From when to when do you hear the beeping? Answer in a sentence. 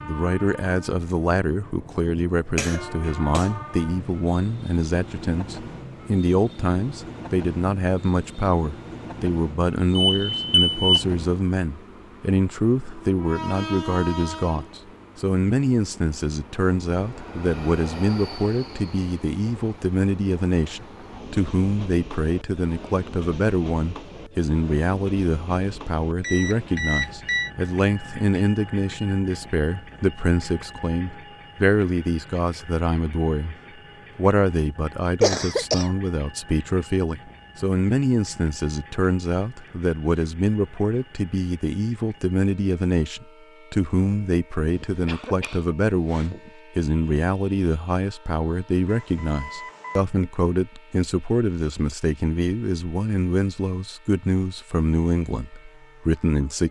You can hear the beeping from 9.9 to 10.8 s, from 26.2 to 27.5 s and from 48.9 to 50.0 s.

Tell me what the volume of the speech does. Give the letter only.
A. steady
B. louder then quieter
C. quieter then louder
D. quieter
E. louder
A.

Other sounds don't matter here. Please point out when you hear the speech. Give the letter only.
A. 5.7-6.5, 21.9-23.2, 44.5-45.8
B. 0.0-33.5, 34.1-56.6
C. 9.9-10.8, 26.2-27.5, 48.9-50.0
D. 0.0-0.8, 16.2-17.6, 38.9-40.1
B.